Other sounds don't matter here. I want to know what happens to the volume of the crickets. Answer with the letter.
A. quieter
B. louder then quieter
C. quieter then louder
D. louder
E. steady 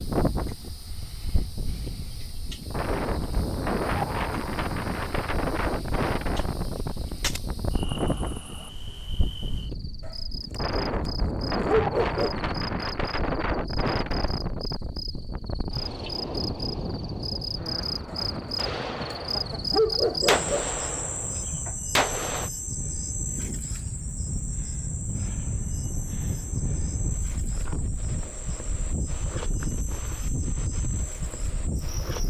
B.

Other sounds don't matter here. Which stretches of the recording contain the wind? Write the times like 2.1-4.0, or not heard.
0.0-32.2.